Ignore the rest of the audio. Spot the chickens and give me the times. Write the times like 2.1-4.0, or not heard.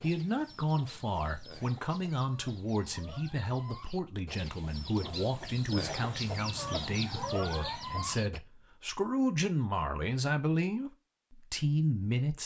0.0-8.4.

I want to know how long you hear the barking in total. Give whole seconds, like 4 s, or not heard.
not heard.